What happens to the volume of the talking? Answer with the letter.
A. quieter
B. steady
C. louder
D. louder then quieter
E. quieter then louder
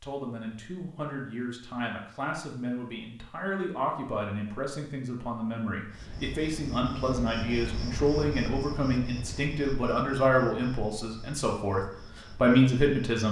C.